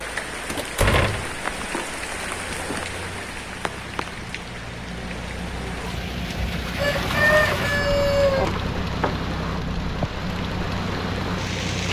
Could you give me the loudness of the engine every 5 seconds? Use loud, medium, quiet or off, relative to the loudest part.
medium, loud, loud.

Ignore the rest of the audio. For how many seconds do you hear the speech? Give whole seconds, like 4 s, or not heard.
not heard.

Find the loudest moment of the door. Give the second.
1 s.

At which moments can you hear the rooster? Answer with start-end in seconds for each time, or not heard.
6.8-8.4.